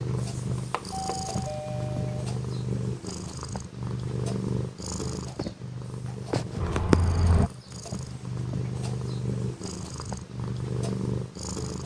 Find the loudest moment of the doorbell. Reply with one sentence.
The loudest moment of the doorbell is at 7 seconds.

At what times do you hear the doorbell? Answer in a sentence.
The doorbell can be heard from 0.7 to 2.2 s and from 6.6 to 7.5 s.